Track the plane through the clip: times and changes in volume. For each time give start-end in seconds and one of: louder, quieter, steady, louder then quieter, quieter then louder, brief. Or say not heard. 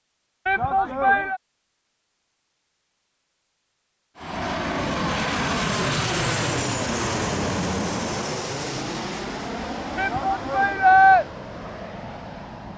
4.2-12.7 quieter.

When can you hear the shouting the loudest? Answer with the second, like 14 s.
11 s.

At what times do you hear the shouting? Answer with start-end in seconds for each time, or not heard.
0.5-1.4, 9.9-11.2.